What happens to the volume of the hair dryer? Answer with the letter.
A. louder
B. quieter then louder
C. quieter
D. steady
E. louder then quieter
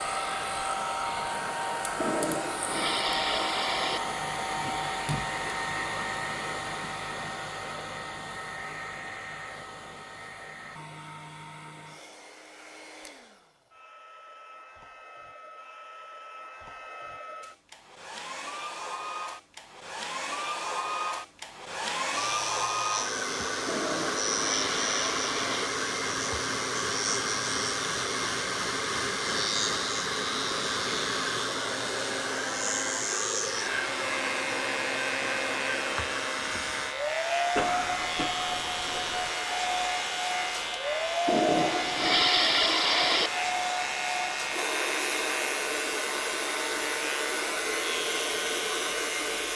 B.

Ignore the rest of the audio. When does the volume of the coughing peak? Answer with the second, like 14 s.
38 s.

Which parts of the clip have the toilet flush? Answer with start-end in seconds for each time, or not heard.
1.9-4.0, 23.6-25.7, 41.2-43.3.